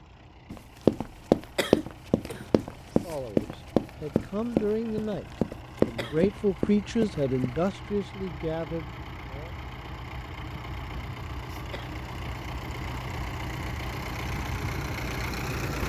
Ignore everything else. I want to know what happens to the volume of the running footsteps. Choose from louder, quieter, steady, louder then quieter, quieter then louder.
quieter.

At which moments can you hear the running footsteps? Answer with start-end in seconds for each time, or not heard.
0.5-7.6.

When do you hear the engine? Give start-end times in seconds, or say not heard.
0.0-15.8.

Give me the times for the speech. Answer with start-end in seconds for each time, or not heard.
3.0-9.5.